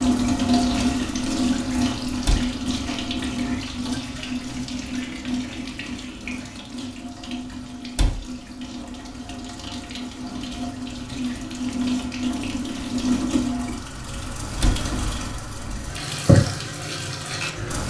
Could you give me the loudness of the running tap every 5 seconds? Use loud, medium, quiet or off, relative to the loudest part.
loud, medium, loud, loud.